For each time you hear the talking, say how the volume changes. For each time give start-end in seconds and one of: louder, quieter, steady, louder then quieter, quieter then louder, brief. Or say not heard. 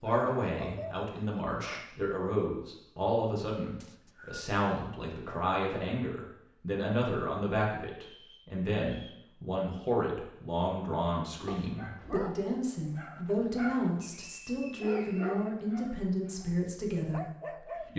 0.0-17.9 steady.